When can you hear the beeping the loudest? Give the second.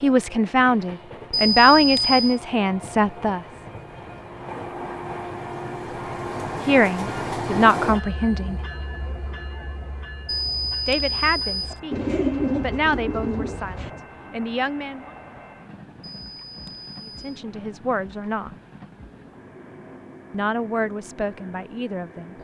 2 s.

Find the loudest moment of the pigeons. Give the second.
12 s.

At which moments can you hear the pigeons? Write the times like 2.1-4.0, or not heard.
11.9-13.9.